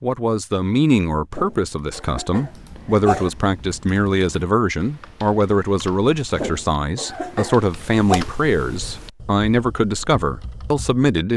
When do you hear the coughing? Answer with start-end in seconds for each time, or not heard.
1.3-3.3, 6.3-8.2.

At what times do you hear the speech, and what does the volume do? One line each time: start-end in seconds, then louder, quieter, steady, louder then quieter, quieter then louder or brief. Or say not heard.
0.0-11.3 steady.